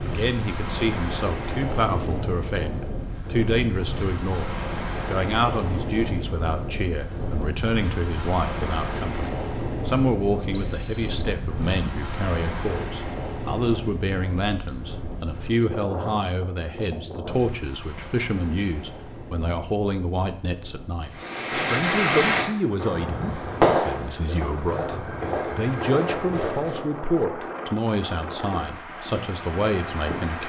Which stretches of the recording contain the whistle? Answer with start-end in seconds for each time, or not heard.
10.5-11.2.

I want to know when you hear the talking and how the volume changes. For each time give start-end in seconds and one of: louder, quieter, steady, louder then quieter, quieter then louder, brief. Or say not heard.
0.0-30.4 steady.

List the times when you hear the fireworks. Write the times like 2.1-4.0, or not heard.
21.1-27.0.